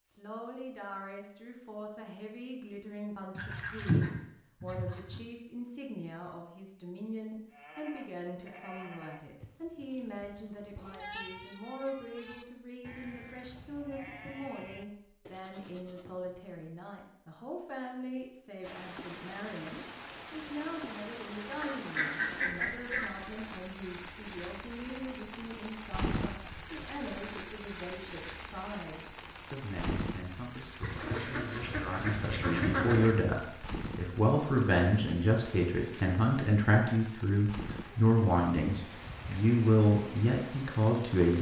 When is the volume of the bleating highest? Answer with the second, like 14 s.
11 s.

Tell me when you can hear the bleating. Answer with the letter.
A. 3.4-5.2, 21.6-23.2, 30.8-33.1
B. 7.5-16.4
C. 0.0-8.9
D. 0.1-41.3
B.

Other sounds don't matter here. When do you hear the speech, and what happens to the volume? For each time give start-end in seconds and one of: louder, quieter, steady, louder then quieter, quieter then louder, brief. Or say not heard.
0.1-41.3 louder.